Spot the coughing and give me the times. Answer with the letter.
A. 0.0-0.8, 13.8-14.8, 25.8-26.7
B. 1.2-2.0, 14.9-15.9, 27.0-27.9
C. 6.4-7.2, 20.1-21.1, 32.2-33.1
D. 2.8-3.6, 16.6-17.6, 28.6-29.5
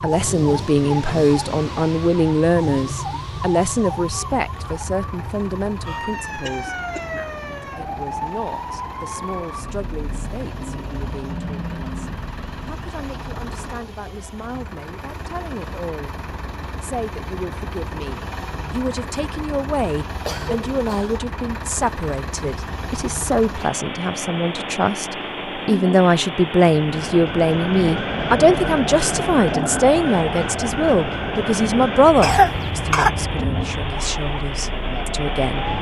C.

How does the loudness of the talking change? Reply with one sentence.
The volume of the talking goes down, then up.